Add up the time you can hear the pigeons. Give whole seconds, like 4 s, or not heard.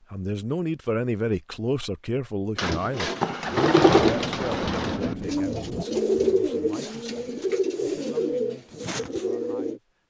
7 s.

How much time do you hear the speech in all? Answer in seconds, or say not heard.
10 s.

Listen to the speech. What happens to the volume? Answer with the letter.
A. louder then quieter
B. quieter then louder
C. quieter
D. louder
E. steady
C.